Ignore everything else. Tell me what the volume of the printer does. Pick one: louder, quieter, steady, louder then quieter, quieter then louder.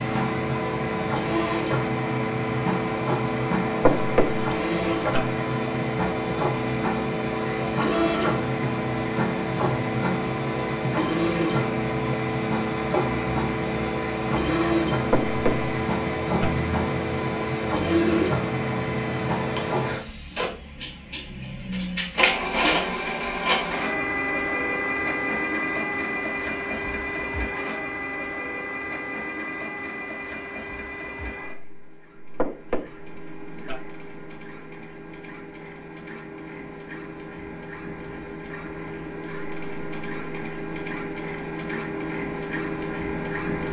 quieter.